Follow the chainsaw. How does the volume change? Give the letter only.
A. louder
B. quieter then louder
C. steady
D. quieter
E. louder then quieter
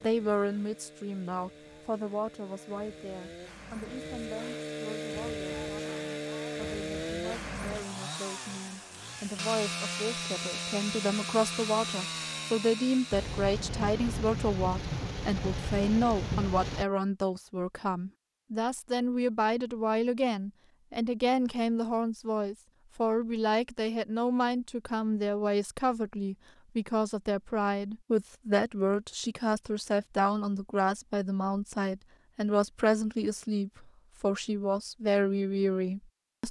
A.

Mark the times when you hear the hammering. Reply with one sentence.
The hammering can't be heard in this clip.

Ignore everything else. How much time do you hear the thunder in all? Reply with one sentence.
You can hear the thunder for 4 seconds altogether.